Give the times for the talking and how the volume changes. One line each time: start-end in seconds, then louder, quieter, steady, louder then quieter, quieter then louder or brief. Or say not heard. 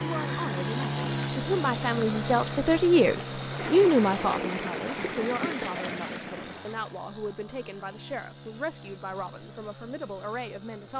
0.0-10.9 louder then quieter.